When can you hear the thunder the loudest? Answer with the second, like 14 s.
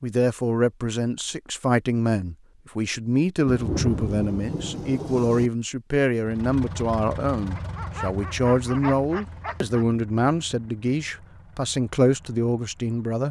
4 s.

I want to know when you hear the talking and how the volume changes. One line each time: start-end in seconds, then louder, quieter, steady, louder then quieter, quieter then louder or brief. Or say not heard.
0.0-13.2 steady.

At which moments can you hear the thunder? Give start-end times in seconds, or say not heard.
3.5-5.5.